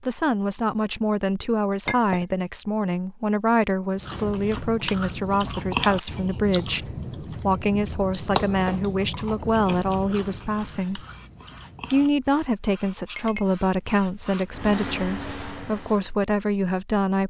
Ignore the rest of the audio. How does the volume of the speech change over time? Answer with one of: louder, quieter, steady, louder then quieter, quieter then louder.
steady.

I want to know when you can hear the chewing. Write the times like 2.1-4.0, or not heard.
4.0-12.1.